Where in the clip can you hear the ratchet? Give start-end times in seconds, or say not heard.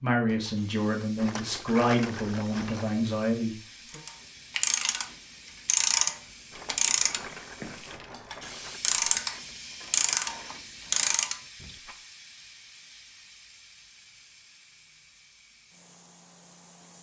3.9-11.8.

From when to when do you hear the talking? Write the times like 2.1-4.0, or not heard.
0.0-4.0.